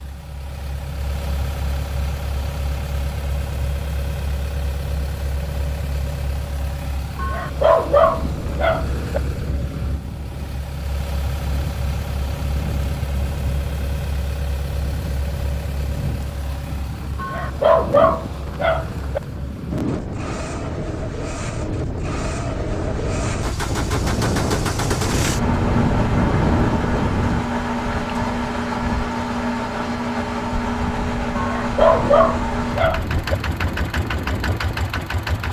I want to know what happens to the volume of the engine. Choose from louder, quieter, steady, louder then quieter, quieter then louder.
louder.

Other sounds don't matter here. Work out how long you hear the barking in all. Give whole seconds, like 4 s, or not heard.
6 s.